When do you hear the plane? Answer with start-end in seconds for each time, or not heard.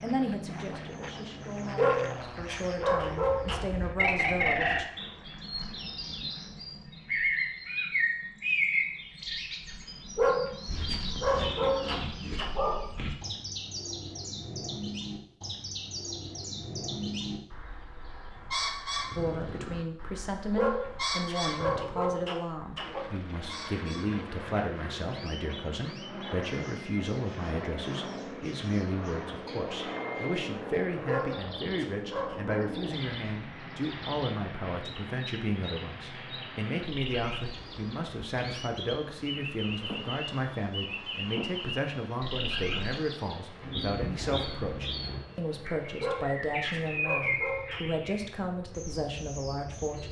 0.0-6.5, 22.8-50.0.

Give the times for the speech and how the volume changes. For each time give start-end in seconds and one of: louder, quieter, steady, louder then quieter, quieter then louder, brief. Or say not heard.
0.0-4.8 louder
19.1-50.0 steady.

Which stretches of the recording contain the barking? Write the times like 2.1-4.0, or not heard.
1.8-3.6, 10.2-12.8, 20.6-23.1, 31.1-32.6, 46.0-47.8.